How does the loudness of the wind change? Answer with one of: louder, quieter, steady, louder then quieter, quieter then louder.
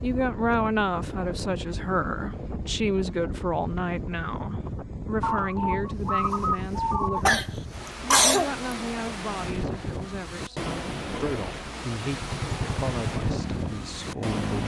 steady.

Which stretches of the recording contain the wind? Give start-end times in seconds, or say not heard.
0.0-14.6.